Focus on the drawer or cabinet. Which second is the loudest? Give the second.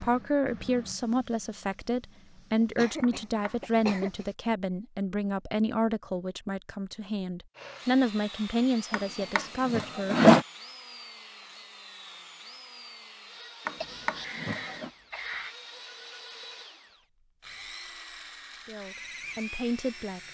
10 s.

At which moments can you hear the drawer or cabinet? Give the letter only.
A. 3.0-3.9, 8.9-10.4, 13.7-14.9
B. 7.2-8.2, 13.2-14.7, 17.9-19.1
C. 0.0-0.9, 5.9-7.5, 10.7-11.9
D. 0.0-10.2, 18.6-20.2
A.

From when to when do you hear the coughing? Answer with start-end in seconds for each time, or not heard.
2.6-4.2, 9.0-9.4, 13.8-15.6.